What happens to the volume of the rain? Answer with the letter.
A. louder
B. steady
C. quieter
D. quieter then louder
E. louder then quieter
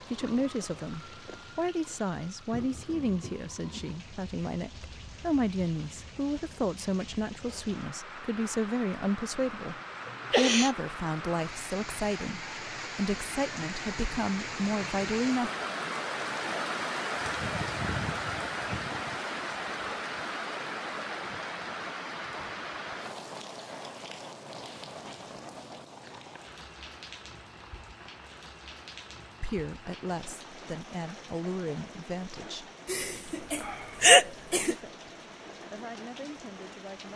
E.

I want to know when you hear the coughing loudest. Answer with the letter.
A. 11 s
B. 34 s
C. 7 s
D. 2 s
B.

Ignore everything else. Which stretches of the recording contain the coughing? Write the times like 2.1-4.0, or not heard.
10.1-10.7, 32.9-34.8.